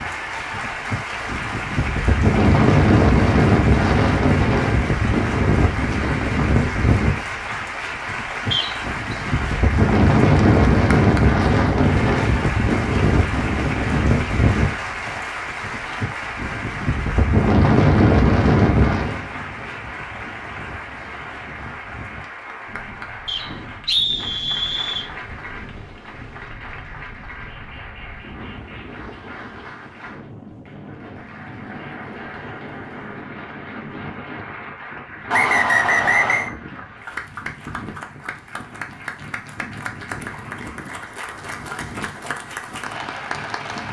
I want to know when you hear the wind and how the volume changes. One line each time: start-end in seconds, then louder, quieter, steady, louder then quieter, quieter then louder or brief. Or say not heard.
0.0-43.8 quieter.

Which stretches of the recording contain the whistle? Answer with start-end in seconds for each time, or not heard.
8.5-8.9, 23.2-25.1, 35.3-36.5.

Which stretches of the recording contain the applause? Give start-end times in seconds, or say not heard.
0.0-43.8.